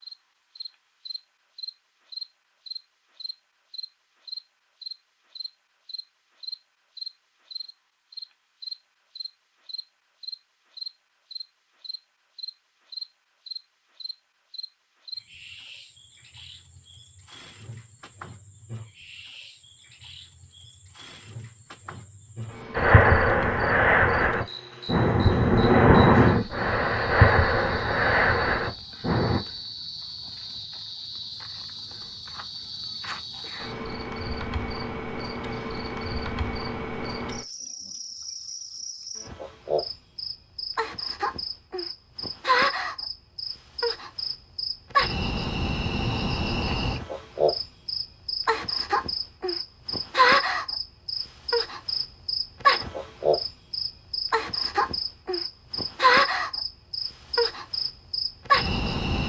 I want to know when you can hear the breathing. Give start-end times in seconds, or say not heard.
22.8-29.4.